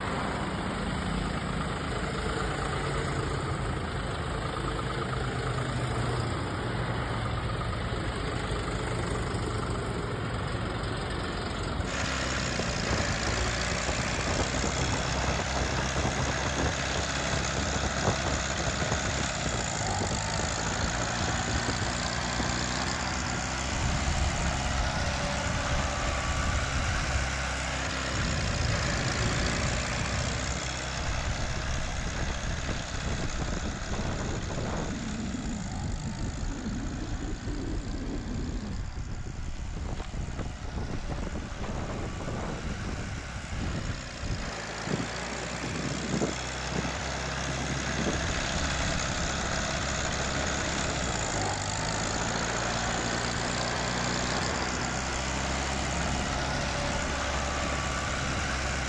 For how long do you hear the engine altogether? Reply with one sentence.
You can hear the engine for 59 seconds altogether.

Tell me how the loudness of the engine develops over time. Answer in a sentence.
The volume of the engine goes down, then up.